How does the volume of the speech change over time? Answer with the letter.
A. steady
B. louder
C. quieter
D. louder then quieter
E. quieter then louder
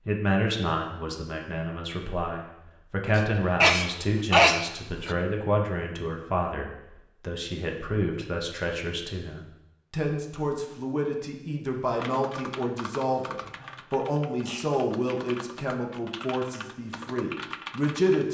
A.